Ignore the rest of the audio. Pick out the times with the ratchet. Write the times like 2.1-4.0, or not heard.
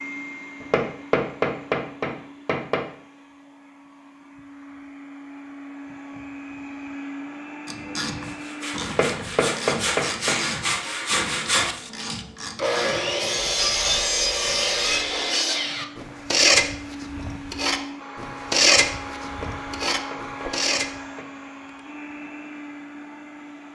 7.7-15.1.